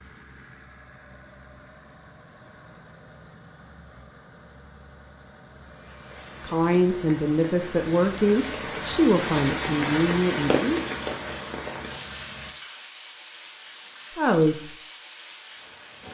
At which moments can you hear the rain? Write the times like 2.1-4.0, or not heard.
5.8-16.0.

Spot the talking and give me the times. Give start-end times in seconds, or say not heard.
6.4-10.8, 14.2-14.7.